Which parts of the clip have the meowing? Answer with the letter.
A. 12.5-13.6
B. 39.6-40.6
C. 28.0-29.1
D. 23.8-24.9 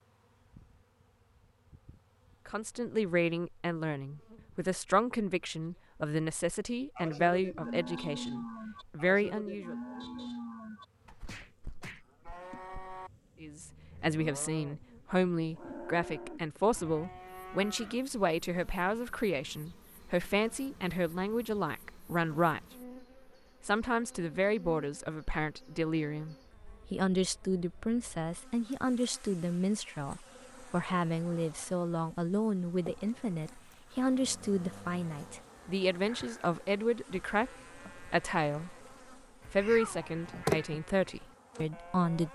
B.